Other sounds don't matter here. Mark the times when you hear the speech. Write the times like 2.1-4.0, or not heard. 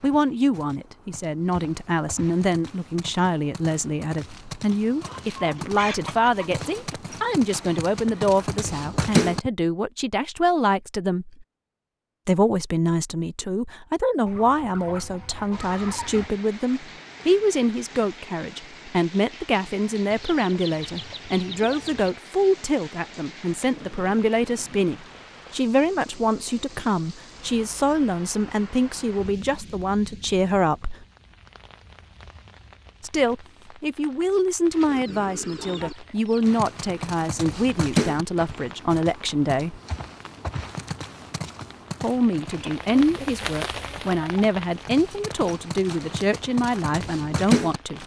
0.0-11.4, 12.2-31.1, 33.0-39.8, 42.0-48.0.